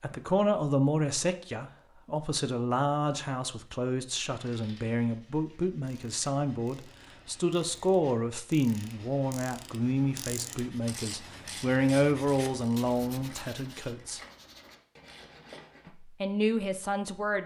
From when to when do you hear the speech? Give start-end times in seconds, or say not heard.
0.0-14.2, 15.8-17.4.